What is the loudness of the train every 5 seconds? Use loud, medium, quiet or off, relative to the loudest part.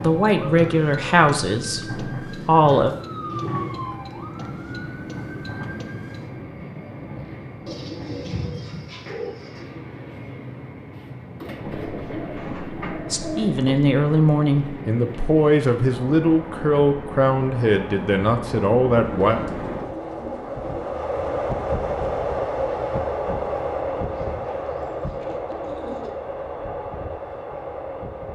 medium, medium, medium, medium, loud, medium.